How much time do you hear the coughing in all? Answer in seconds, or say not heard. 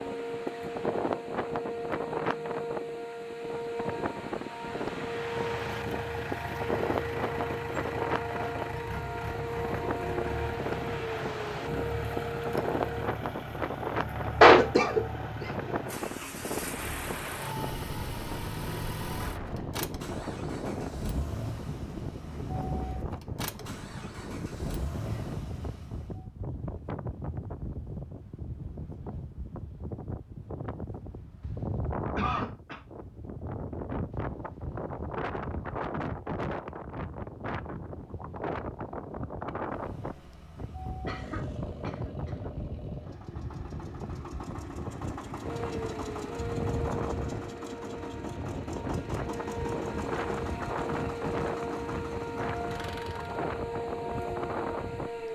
3 s.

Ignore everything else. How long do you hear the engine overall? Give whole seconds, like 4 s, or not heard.
35 s.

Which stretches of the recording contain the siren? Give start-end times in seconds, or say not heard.
0.0-13.1, 45.4-55.3.